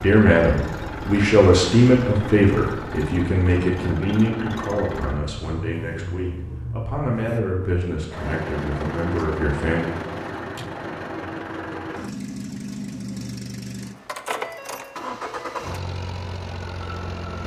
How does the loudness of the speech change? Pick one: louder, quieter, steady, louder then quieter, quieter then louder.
quieter.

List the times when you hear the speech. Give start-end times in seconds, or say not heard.
0.0-9.8.